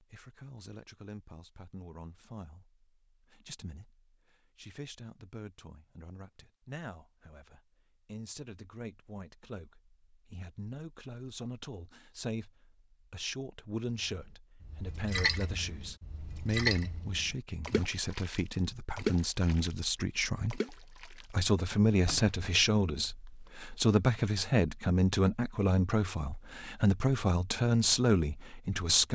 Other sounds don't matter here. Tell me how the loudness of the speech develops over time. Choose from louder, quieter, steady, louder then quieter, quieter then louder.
louder.